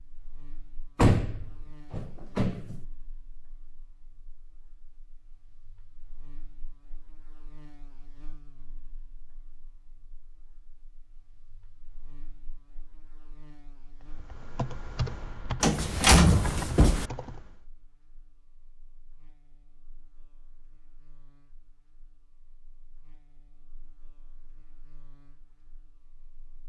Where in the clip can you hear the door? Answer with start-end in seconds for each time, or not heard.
0.9-2.8, 15.6-17.1.